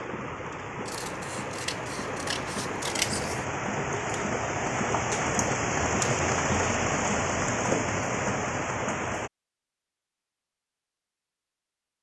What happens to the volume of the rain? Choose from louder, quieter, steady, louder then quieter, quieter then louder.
louder.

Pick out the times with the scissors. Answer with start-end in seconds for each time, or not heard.
0.8-3.5.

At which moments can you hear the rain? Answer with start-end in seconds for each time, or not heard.
0.0-9.3.